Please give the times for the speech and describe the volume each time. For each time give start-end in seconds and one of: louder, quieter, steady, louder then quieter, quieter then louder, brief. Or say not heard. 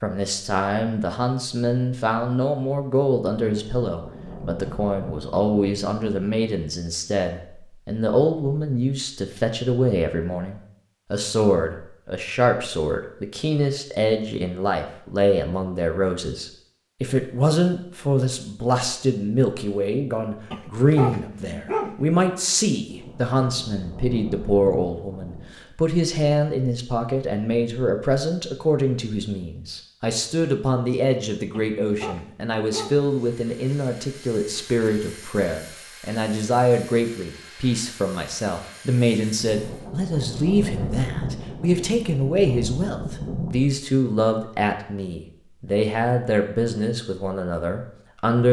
0.0-48.4 steady.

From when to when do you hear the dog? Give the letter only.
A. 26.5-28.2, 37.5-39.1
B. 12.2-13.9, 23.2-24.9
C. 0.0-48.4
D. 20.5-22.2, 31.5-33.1
D.